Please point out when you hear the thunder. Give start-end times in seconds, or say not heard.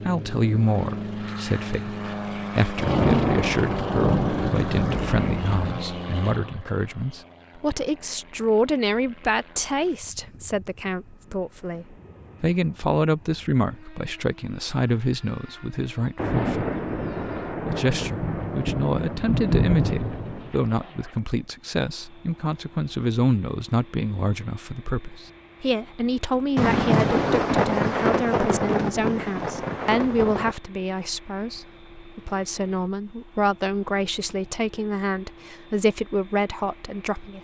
2.8-5.7, 16.1-20.6, 26.6-30.6.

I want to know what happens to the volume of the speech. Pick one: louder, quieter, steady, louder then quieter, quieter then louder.
steady.